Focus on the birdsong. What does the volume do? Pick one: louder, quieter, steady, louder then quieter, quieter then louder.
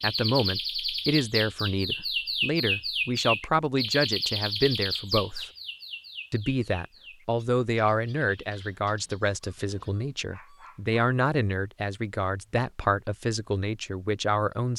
quieter.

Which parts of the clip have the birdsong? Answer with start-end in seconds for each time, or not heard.
0.0-9.9.